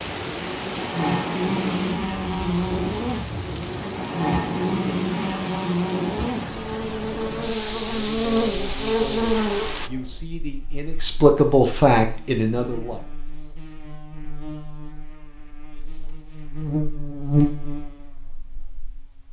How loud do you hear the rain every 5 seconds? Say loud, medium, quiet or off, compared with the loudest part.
loud, loud, off, off.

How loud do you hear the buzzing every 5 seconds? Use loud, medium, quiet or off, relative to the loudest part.
loud, loud, quiet, loud.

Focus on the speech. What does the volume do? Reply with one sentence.
The volume of the speech goes up.